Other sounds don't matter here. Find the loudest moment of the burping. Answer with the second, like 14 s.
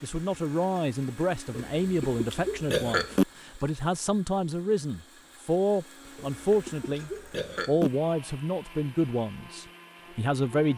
3 s.